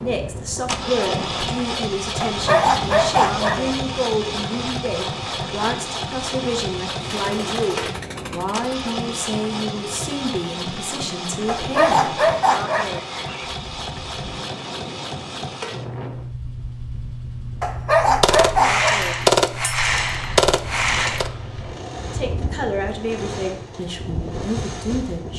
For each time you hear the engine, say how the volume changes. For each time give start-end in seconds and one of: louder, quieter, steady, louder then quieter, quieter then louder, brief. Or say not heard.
0.0-25.3 quieter.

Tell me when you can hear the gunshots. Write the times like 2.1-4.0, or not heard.
7.0-8.8, 18.2-21.3.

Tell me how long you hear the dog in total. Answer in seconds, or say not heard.
5 s.